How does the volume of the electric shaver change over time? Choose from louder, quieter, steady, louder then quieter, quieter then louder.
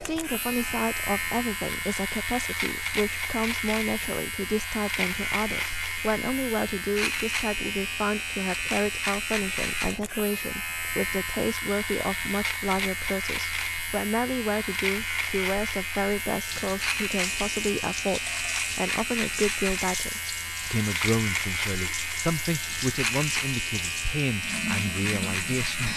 steady.